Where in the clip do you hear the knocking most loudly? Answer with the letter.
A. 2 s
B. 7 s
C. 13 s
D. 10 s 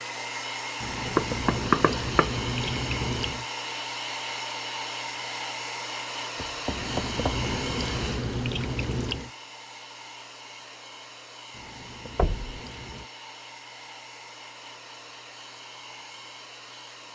A.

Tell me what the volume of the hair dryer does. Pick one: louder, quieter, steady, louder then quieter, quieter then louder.
quieter.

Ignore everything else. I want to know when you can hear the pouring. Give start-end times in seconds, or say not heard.
0.8-3.5, 6.7-9.3, 11.5-13.1.